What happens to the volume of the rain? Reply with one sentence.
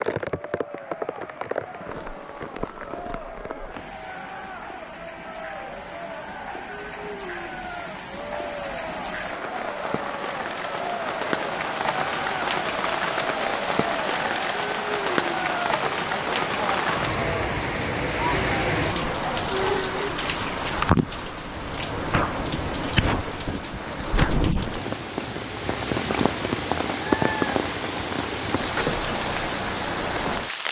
The volume of the rain goes up.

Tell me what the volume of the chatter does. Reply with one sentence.
The volume of the chatter goes up.